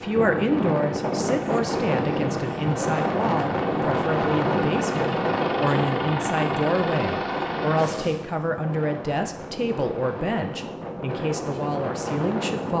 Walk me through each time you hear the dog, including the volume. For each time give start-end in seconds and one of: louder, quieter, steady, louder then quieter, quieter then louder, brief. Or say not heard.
not heard.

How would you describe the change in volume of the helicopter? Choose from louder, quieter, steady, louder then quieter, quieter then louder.
louder.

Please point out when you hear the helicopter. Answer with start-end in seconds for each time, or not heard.
0.0-8.2.